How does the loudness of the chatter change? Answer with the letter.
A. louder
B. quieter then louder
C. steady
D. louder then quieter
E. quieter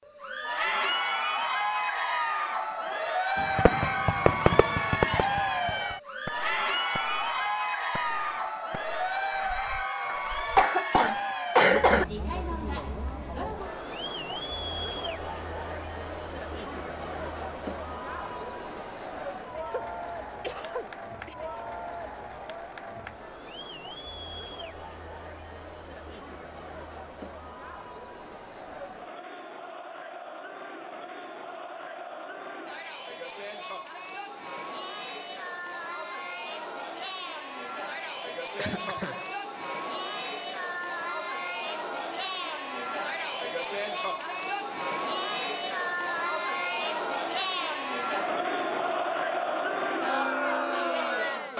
B.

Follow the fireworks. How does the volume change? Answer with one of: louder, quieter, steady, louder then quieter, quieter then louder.
quieter.